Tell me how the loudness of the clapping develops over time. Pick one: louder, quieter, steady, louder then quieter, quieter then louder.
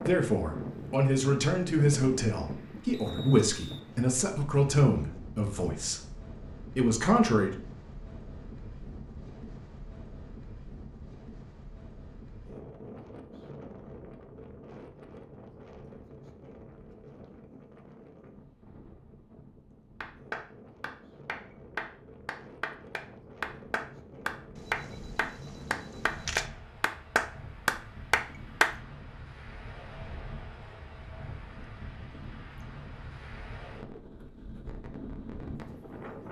louder.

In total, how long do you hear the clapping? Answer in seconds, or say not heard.
9 s.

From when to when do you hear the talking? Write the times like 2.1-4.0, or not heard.
0.0-6.0, 6.8-7.5.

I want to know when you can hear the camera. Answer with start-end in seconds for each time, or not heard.
24.6-26.5.